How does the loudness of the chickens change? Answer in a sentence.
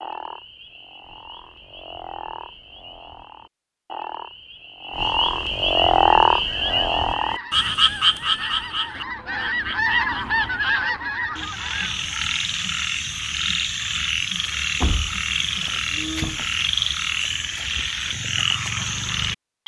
The volume of the chickens goes up, then down.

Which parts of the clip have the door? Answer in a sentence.
You can hear the door from 14.8 to 16.4 s.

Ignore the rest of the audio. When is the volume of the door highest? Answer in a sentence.
The loudest moment of the door is at 15 seconds.